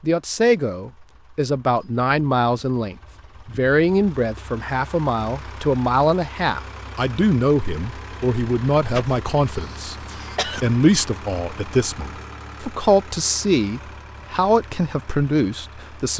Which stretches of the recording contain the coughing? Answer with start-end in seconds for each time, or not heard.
8.9-10.7.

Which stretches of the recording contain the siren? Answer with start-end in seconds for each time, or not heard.
not heard.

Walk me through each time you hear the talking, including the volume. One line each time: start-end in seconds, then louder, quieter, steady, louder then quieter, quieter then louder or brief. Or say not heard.
0.0-16.1 steady.